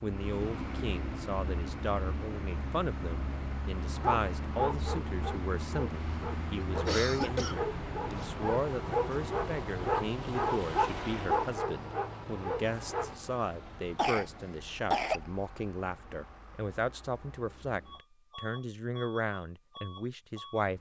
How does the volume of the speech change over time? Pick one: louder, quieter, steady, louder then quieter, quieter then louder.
steady.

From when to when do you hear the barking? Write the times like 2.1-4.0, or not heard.
4.0-13.2.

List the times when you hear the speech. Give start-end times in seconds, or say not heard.
0.0-20.7.